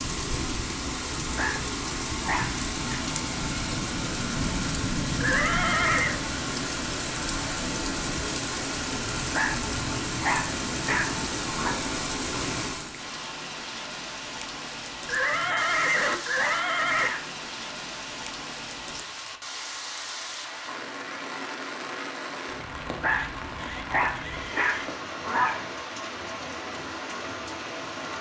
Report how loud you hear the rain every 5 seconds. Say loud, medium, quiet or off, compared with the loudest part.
loud, loud, loud, medium, medium, medium.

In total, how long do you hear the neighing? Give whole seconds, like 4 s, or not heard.
5 s.